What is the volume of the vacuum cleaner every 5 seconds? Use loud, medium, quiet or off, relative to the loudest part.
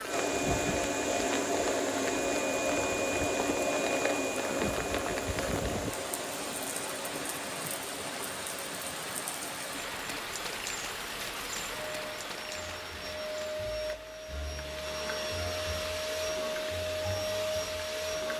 loud, medium, medium, loud.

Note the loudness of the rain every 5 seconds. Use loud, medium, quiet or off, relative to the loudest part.
loud, loud, loud, medium.